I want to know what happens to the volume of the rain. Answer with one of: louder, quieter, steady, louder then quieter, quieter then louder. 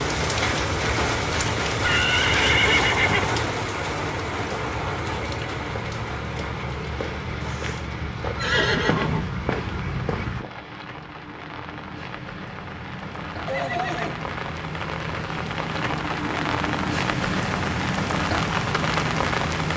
quieter then louder.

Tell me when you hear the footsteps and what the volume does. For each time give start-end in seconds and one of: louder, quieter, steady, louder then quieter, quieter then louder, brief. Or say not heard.
4.1-10.4 louder.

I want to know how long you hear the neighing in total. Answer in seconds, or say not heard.
4 s.